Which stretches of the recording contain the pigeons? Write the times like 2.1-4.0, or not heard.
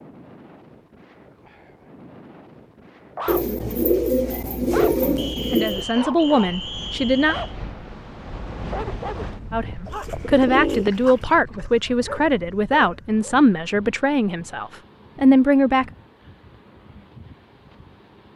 3.2-5.8, 9.8-11.2.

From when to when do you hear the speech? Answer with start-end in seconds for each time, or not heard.
5.5-7.3, 9.5-15.9.